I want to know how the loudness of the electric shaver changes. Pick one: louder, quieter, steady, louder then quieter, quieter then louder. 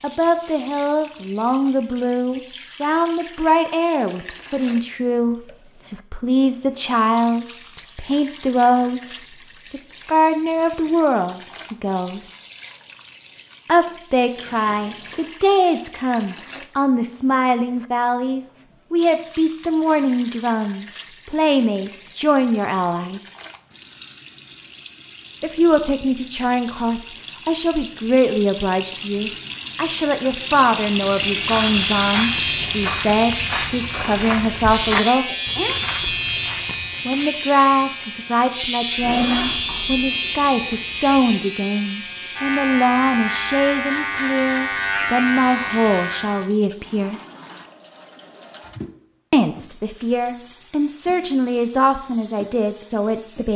steady.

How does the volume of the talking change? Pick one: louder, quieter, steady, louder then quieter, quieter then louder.
steady.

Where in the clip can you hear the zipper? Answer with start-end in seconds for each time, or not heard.
14.3-15.3, 39.0-40.0.